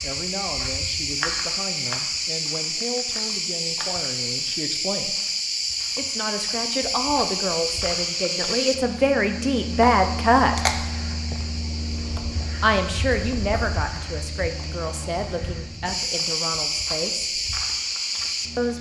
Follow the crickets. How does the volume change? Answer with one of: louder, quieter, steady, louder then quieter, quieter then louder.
quieter then louder.